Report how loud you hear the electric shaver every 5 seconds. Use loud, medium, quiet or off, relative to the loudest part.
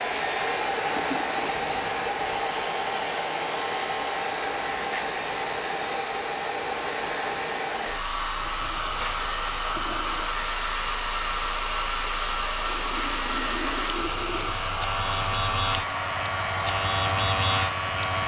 medium, medium, medium, loud.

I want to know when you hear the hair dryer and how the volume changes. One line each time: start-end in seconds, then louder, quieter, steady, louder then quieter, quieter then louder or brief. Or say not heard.
0.0-18.2 steady.